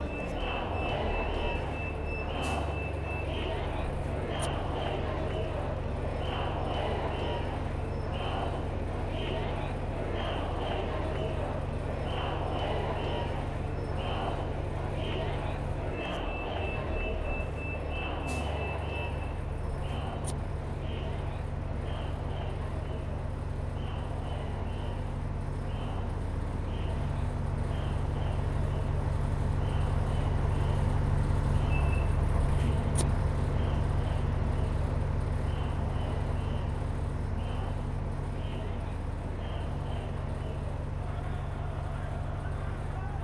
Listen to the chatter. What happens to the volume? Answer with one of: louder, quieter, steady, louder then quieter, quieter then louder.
quieter.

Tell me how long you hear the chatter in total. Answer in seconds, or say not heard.
43 s.